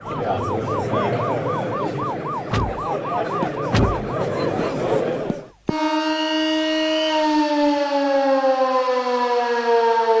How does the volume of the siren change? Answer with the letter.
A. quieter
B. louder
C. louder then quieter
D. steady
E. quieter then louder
B.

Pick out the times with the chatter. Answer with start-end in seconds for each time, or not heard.
0.0-5.5.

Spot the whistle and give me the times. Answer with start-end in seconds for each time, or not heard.
6.0-7.2.